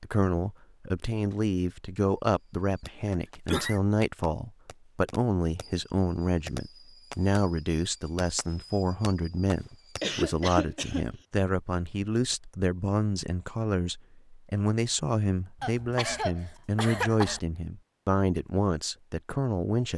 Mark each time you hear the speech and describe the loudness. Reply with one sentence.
The speech can be heard from 0.0 to 19.9 s, at a steady volume.